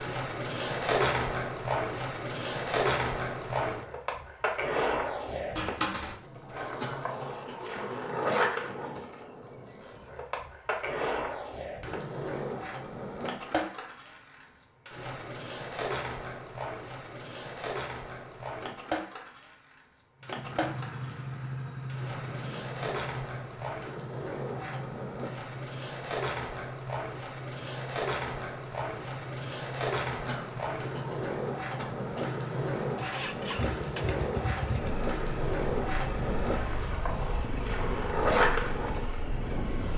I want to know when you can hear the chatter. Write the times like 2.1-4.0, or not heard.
not heard.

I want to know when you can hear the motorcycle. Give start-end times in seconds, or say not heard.
20.2-39.9.